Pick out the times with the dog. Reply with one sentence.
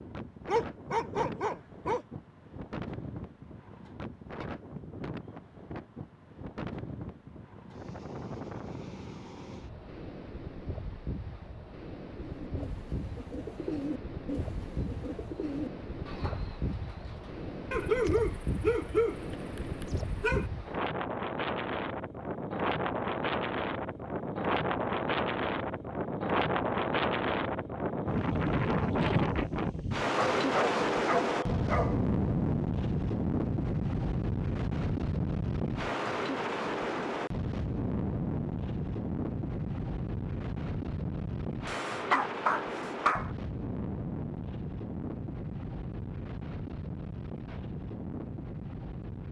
The dog can be heard from 0.5 to 2.0 s, from 17.7 to 20.4 s, from 30.4 to 32.0 s and from 41.6 to 43.3 s.